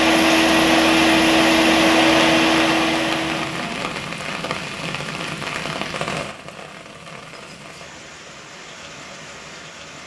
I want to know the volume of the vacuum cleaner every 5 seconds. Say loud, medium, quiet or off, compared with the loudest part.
loud, off.